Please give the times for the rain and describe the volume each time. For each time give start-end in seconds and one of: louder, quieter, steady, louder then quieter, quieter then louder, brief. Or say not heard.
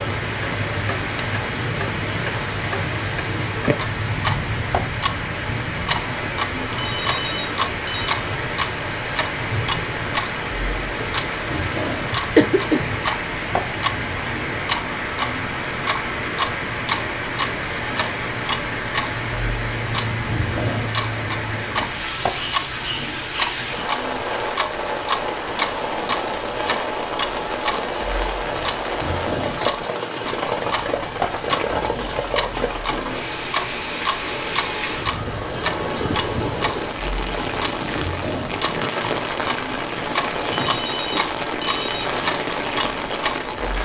0.0-43.8 steady.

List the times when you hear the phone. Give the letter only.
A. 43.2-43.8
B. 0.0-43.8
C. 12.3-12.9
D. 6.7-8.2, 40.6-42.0
D.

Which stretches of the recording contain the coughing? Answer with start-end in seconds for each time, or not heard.
12.3-12.9.